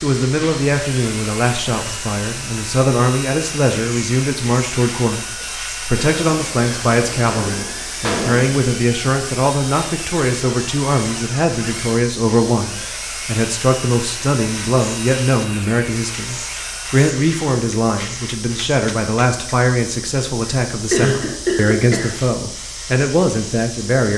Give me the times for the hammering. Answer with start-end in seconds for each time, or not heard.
6.0-8.6, 17.7-19.6.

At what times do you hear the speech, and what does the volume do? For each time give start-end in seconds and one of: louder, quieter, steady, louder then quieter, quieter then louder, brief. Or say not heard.
0.0-24.1 steady.